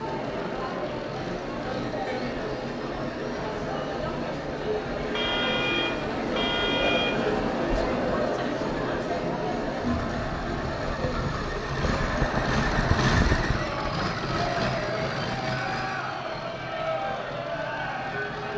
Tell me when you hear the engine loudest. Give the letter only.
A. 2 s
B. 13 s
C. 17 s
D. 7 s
B.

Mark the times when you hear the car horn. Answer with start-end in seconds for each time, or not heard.
5.1-7.4.